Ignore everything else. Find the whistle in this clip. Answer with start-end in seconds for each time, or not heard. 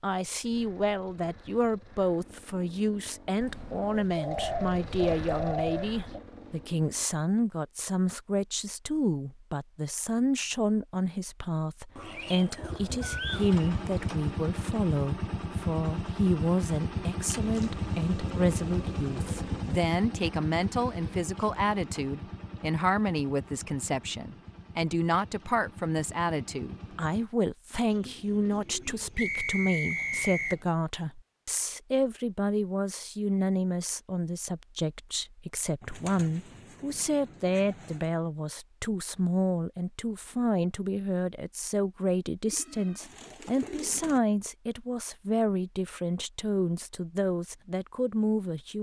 29.1-30.6.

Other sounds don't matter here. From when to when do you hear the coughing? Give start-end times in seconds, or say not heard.
not heard.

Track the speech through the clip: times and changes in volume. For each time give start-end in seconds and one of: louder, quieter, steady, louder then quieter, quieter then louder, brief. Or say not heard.
0.0-48.7 steady.